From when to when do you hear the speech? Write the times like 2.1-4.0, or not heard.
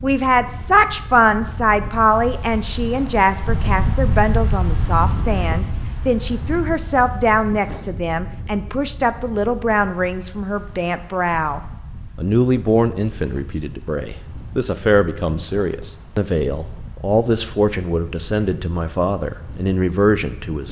0.0-20.6.